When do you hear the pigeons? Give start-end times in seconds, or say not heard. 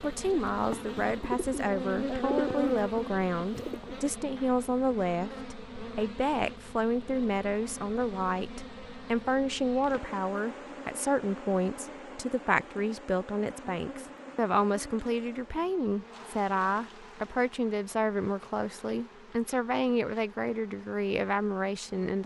0.0-4.0.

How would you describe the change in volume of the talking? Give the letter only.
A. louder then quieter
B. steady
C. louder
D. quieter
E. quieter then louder
B.